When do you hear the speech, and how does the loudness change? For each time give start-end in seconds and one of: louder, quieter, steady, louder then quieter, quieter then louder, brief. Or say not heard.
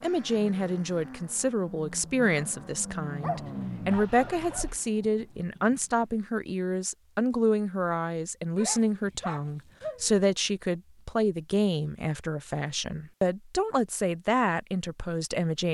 0.0-15.6 steady.